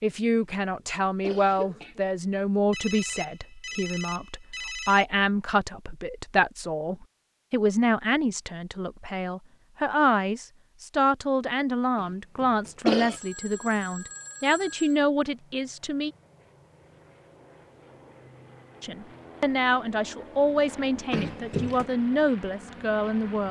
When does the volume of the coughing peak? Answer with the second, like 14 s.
13 s.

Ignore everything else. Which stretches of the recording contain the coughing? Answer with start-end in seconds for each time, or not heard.
0.3-2.0, 11.9-13.2, 21.1-21.9.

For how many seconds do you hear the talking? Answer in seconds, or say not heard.
21 s.